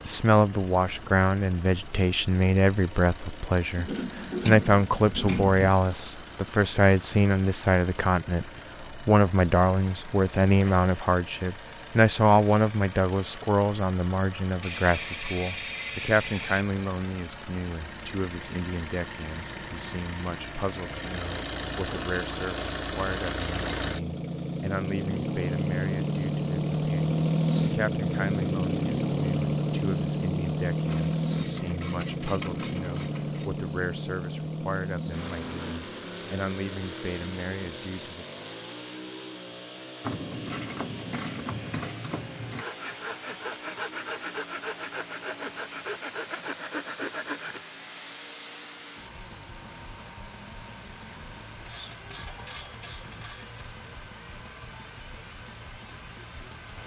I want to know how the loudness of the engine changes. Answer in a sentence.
The loudness of the engine goes up, then down.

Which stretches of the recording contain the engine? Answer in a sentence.
You can hear the engine from 0.0 to 56.8 s.